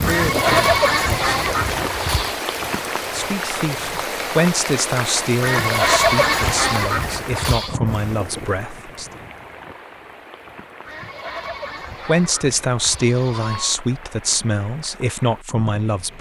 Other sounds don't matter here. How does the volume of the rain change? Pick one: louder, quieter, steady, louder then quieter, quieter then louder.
quieter.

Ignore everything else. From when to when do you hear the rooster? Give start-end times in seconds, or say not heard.
not heard.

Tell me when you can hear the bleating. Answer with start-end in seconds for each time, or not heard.
0.1-2.4, 5.4-7.8, 10.8-13.8.